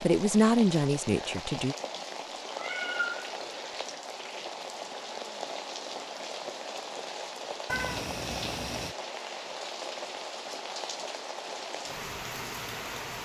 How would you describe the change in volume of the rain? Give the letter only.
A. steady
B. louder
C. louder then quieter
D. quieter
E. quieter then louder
A.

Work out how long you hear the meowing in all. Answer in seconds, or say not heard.
3 s.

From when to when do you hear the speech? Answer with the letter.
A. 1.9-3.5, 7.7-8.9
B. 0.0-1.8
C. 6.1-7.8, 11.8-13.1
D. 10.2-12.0
B.